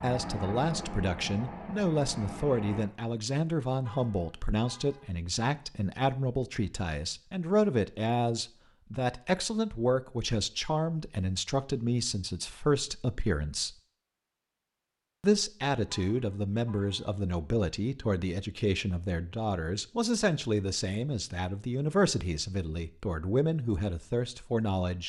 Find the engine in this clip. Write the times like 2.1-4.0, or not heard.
0.0-2.9.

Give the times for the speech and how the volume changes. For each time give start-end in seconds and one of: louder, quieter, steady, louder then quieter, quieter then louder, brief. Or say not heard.
0.0-13.8 steady
15.2-25.0 steady.